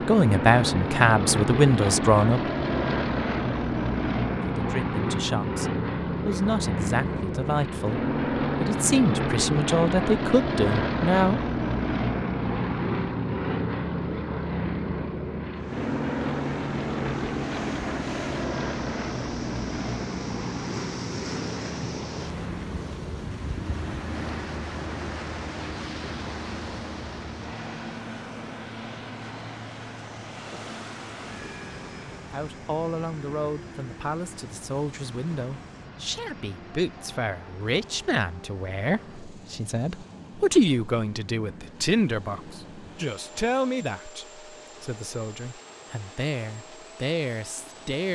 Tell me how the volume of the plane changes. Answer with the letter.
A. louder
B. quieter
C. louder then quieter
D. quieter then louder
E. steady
B.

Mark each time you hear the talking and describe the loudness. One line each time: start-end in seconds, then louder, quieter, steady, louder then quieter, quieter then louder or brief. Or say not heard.
0.1-2.4 brief
4.5-11.4 louder
32.3-48.1 louder then quieter.